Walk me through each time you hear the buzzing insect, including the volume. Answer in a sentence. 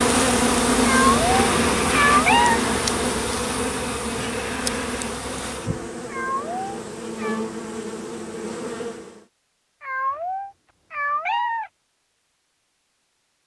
The buzzing insect can be heard from 0.0 to 9.2 s, getting quieter.